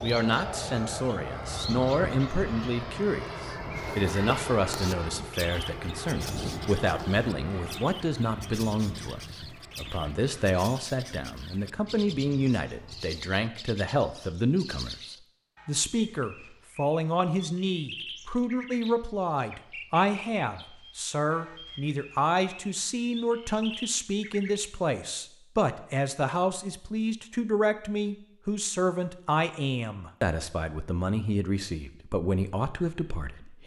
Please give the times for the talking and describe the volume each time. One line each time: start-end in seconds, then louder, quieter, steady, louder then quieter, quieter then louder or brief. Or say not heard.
0.0-33.6 steady.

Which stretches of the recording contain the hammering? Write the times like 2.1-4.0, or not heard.
not heard.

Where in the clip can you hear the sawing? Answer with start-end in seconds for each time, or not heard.
not heard.